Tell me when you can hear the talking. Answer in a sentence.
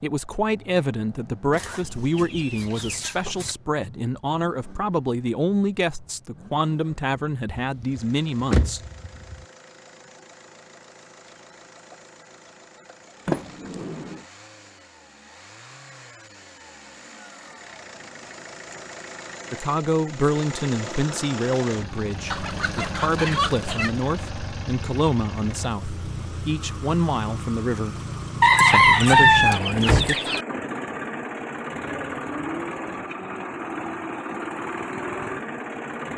The talking can be heard from 0.0 to 8.8 s, from 19.5 to 27.9 s and from 28.6 to 30.1 s.